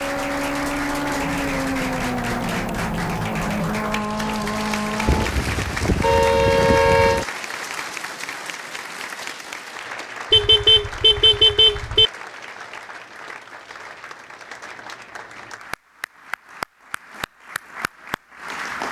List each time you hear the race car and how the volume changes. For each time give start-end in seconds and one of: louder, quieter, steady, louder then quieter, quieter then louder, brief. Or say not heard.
0.0-5.3 steady.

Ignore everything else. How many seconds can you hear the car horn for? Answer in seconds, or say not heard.
4 s.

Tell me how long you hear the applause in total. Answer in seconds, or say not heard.
19 s.